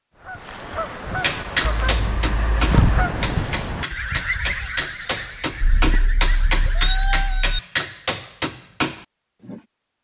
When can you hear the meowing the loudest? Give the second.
7 s.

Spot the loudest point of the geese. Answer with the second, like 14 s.
3 s.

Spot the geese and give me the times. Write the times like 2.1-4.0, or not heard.
0.2-7.3.